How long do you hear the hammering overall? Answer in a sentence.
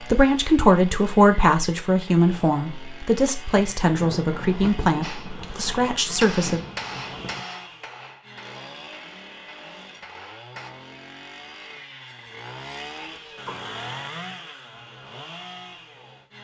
The hammering can be heard for 6 seconds in total.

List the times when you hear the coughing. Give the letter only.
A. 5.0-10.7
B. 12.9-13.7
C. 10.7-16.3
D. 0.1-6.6
B.